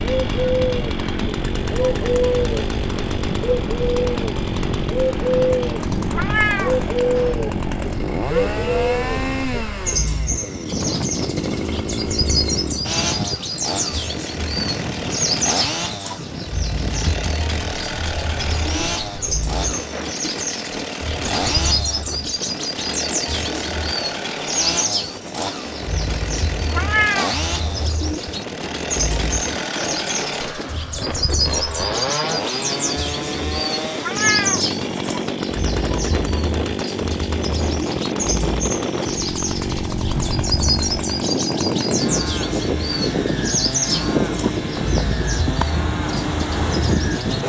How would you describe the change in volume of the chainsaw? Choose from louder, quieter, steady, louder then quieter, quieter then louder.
steady.